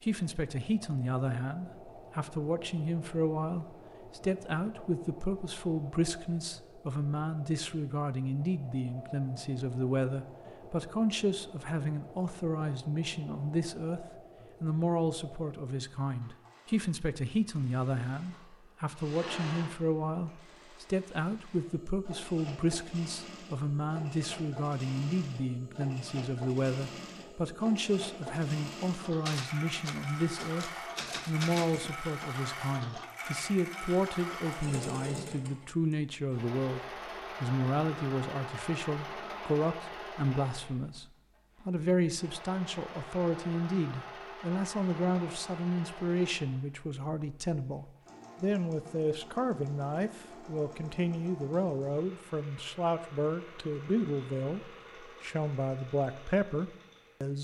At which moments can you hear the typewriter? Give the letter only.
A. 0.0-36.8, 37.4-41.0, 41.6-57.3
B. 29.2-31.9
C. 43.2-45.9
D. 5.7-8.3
B.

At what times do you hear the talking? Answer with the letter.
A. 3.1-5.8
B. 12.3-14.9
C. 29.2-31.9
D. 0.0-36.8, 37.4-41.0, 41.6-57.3
D.